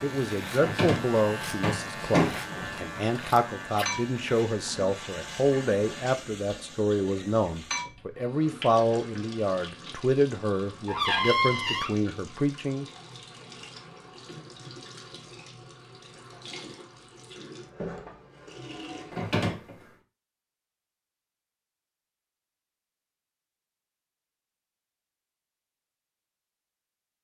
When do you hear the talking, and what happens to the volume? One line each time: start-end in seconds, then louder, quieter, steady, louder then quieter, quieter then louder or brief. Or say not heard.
0.0-12.8 steady.